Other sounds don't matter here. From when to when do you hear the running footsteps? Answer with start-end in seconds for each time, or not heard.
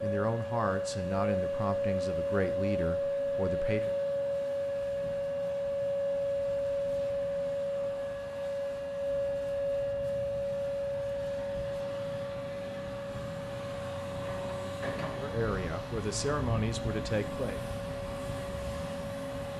not heard.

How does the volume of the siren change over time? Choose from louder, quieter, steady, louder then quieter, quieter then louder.
quieter.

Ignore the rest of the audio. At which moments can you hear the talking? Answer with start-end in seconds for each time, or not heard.
0.0-4.0, 15.2-17.6.